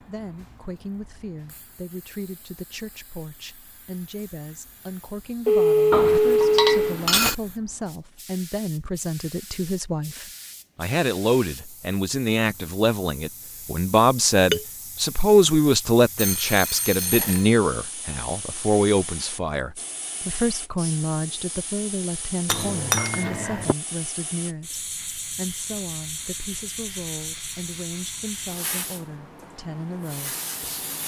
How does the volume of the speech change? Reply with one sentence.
The volume of the speech goes up, then down.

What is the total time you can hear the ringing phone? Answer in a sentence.
You can hear the ringing phone for 3 seconds altogether.